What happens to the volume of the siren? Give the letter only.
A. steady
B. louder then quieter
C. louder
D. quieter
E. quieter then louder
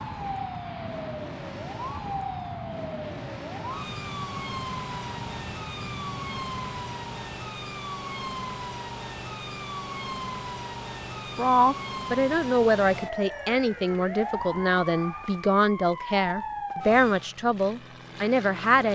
A.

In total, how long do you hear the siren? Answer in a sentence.
The siren can be heard for 17 seconds in total.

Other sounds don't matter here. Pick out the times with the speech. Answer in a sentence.
The speech can be heard from 11.3 to 18.9 s.